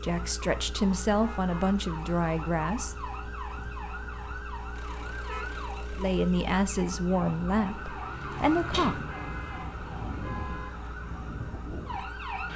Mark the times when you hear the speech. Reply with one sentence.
You can hear the speech from 0.0 to 3.0 s and from 6.0 to 9.1 s.